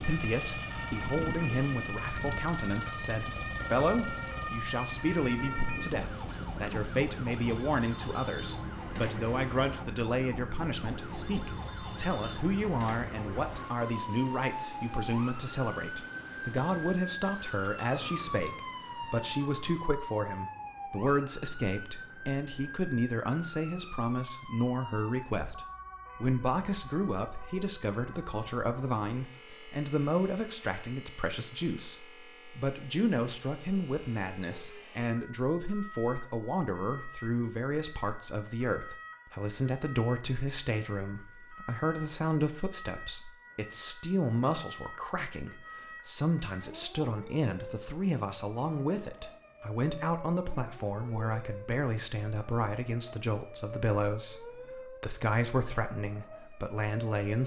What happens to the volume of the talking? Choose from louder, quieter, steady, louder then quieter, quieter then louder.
steady.